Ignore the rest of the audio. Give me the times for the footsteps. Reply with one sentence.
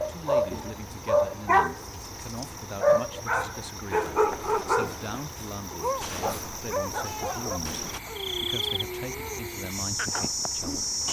The footsteps can't be heard in this clip.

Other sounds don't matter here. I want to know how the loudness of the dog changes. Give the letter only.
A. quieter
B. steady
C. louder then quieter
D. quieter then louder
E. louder
A.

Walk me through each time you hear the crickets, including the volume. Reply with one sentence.
You can hear the crickets from 0.0 to 11.0 s, getting louder.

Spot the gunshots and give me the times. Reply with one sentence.
You can hear the gunshots from 6.0 to 8.0 s.